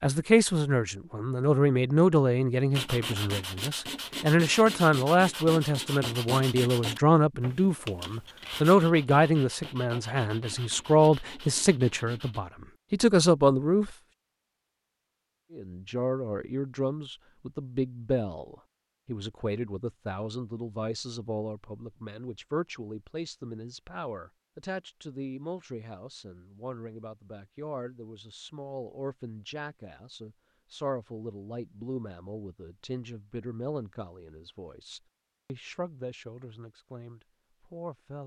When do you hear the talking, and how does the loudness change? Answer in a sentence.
The talking can be heard from 0.0 to 13.9 s, at a steady volume; and from 15.5 to 38.2 s, getting quieter.